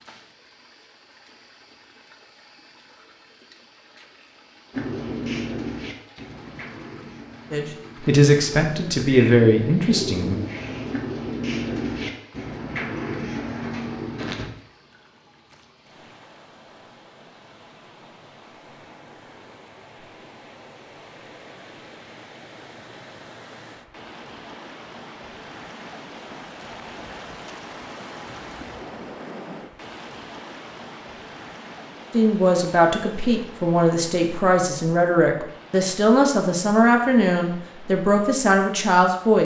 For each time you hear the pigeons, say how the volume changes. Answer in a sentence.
The pigeons can be heard from 4.7 to 14.5 s, getting quieter then louder.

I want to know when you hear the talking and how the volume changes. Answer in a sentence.
The talking can be heard briefly from 7.5 to 10.4 s; and from 32.1 to 39.3 s, at a steady volume.